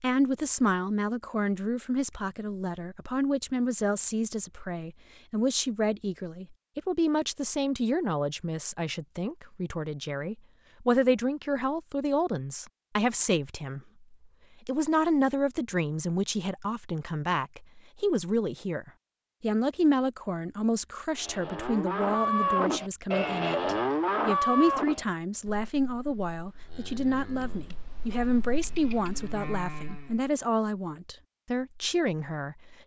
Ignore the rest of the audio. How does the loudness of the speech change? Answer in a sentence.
The volume of the speech stays about the same.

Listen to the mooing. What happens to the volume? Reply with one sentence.
The volume of the mooing goes down, then up.